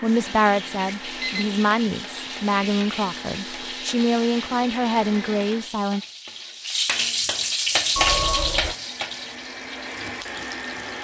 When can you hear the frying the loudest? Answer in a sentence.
The volume of the frying peaks at 8 seconds.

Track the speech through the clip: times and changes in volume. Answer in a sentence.
You can hear the speech from 0.0 to 6.0 s, at a steady volume.